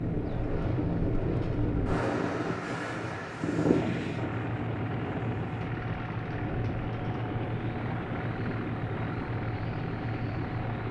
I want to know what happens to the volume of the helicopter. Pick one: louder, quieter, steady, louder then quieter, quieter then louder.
louder.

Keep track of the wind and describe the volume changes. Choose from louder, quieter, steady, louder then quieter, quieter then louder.
quieter.